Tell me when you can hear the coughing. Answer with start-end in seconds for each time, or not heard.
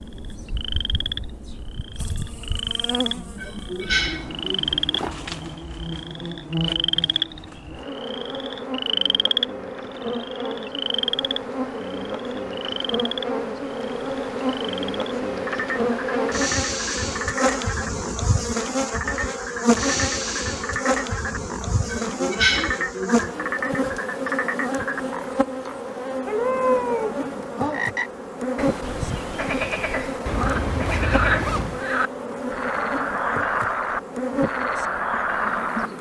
3.0-4.8, 21.7-23.5.